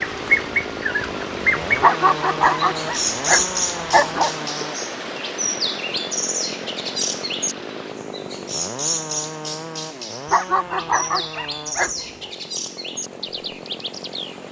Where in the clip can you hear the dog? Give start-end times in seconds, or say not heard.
1.8-4.3, 10.3-12.0.